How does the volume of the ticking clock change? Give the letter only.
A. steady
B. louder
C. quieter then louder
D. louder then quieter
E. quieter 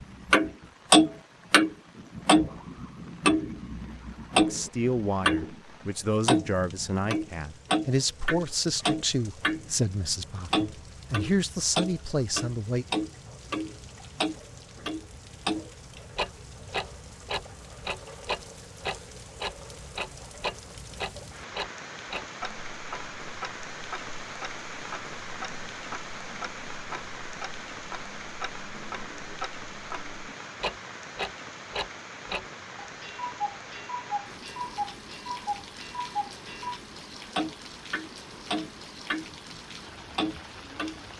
C.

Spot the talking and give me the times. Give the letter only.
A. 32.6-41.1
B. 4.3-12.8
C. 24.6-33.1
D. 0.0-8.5
B.